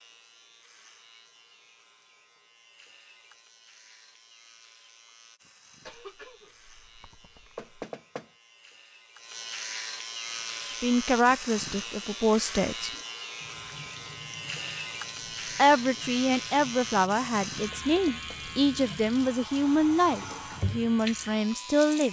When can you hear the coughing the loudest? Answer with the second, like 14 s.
6 s.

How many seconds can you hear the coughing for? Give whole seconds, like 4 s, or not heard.
2 s.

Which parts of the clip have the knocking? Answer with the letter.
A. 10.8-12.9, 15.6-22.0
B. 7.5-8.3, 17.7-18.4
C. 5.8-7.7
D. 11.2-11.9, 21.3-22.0
B.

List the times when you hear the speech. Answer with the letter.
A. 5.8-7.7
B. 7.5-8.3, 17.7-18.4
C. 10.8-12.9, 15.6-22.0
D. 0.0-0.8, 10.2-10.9
C.